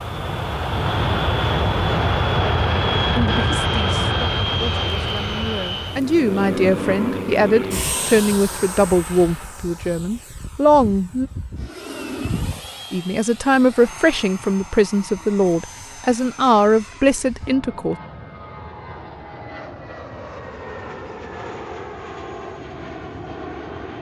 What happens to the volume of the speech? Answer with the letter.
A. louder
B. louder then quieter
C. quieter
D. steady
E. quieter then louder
A.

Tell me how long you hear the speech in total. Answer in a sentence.
You can hear the speech for 13 seconds altogether.